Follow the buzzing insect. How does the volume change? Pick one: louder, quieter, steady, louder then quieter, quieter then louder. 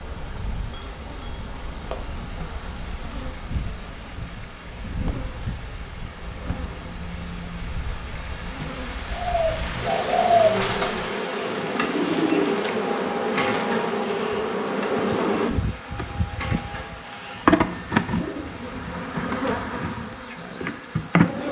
louder.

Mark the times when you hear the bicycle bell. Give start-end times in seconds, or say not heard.
0.7-1.4, 17.3-18.4.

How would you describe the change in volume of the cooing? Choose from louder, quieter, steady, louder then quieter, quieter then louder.
quieter.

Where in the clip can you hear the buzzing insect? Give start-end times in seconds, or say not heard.
0.0-21.4.